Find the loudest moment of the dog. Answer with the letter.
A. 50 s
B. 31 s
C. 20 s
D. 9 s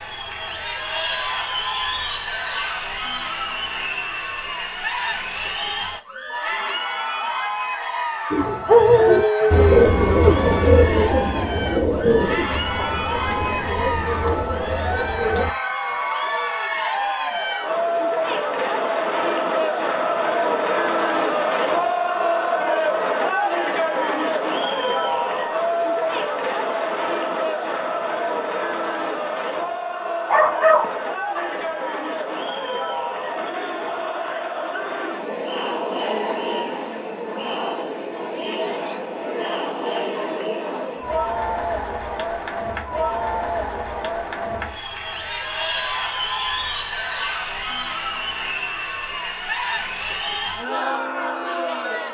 D.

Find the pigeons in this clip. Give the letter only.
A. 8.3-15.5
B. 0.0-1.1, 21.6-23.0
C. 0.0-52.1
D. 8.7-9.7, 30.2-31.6
A.